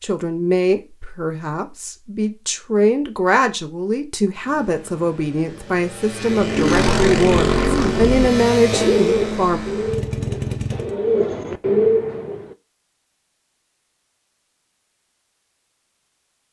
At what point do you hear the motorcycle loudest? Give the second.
7 s.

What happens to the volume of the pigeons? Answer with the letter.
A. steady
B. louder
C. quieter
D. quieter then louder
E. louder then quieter
D.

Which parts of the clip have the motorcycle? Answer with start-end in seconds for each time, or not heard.
4.4-10.9.